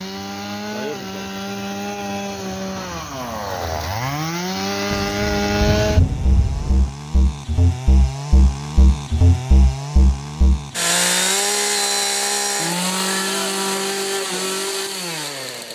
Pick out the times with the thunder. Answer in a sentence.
You can hear the thunder from 4.9 to 6.9 s.